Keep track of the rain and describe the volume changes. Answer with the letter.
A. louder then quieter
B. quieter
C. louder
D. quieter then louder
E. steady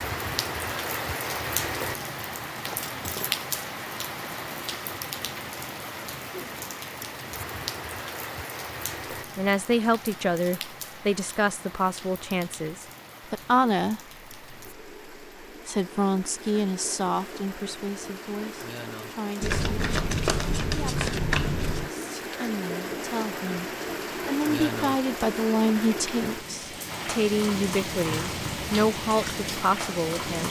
D.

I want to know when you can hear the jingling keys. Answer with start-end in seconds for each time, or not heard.
2.6-3.3.